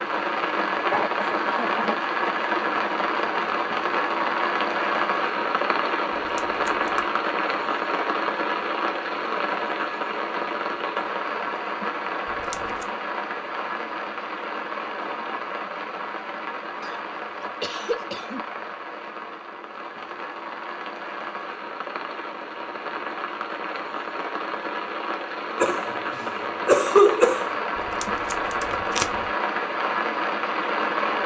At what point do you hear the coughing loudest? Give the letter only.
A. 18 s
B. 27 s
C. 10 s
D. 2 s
B.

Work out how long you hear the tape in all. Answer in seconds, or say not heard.
3 s.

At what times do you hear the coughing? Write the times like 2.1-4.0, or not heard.
0.9-1.9, 16.8-18.4, 25.6-27.5.